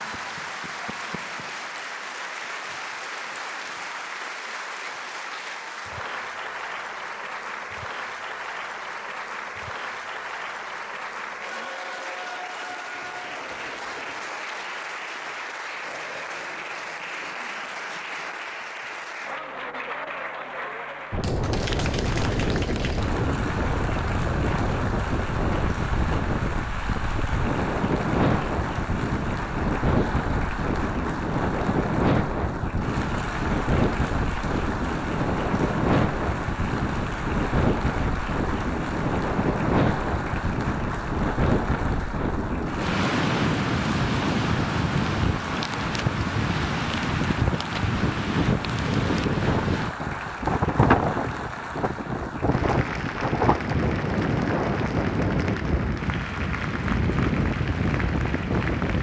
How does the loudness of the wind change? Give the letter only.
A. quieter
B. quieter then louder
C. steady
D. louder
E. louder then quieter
C.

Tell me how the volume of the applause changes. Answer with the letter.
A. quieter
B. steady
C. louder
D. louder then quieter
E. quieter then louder
B.